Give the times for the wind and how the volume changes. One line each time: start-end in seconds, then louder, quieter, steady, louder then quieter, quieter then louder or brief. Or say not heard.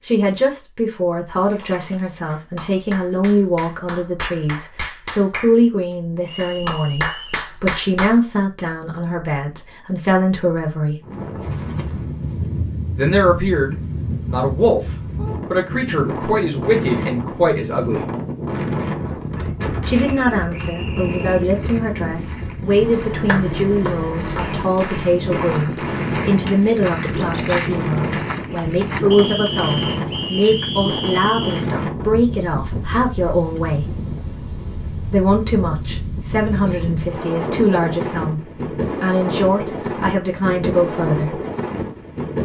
11.0-42.3 steady.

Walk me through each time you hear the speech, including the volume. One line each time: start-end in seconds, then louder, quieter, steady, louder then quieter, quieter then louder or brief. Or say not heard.
0.0-11.0 steady
12.9-18.1 steady
19.9-33.9 steady
35.0-41.4 steady.